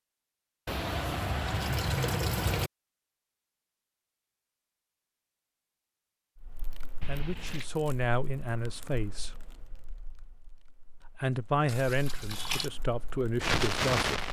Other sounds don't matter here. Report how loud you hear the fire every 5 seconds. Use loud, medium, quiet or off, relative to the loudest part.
off, quiet, loud.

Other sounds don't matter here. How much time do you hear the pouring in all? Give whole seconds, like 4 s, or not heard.
4 s.